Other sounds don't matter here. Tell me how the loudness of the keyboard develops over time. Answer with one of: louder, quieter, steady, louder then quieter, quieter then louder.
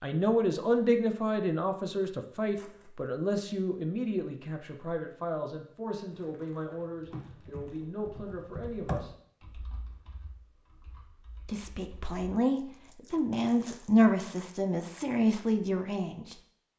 louder then quieter.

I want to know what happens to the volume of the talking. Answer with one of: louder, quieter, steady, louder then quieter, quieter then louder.
quieter then louder.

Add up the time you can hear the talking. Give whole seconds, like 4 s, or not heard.
14 s.